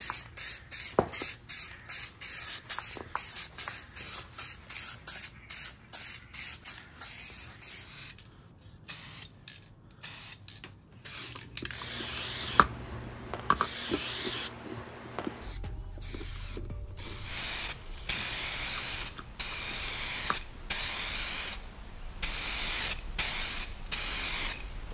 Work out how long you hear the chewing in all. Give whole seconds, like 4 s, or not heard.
9 s.